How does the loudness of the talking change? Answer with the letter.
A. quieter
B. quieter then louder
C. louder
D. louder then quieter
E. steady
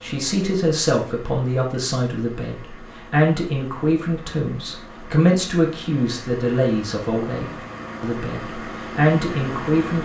E.